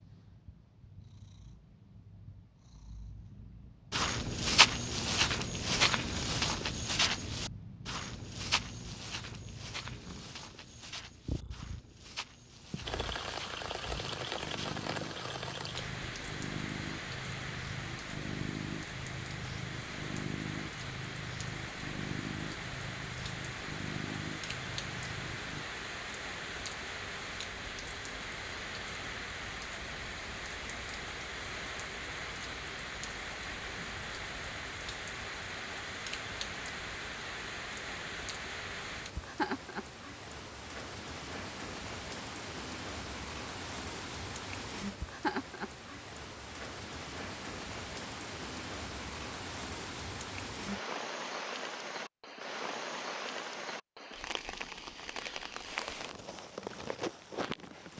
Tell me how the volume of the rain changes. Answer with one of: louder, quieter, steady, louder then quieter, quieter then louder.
steady.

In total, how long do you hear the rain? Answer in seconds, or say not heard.
45 s.